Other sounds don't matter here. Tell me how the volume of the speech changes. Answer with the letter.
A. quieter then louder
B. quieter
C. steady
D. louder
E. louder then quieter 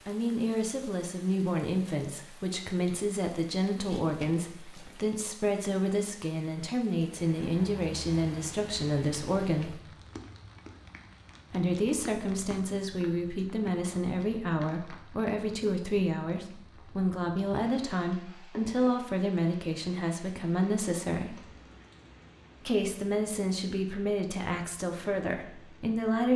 C.